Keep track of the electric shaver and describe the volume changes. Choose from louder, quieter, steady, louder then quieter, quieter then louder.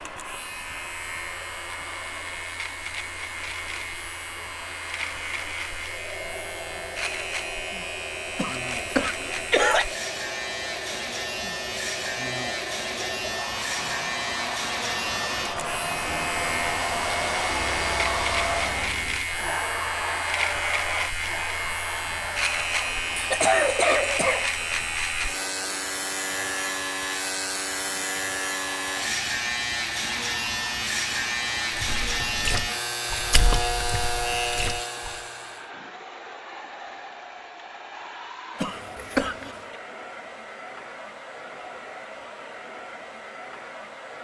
louder.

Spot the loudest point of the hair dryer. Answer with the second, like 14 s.
18 s.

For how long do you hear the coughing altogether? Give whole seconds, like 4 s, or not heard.
4 s.